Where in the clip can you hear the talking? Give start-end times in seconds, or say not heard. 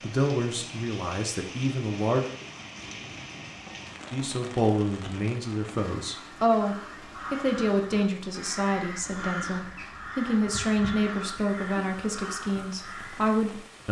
0.0-2.2, 4.1-13.8.